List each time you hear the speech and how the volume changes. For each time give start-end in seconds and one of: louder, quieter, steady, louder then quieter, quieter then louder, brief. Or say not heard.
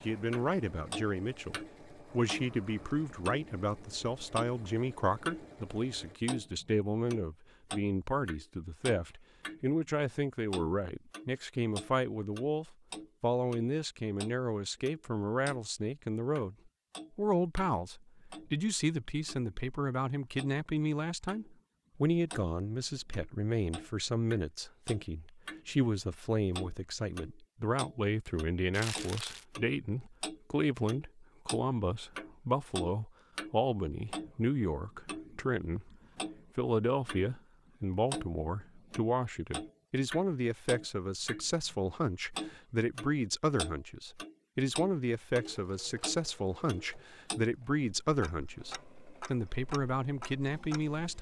0.0-16.6 steady
17.1-35.9 steady
36.5-51.1 steady.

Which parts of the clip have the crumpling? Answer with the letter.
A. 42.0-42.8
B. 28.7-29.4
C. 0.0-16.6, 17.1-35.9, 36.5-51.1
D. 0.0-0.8
B.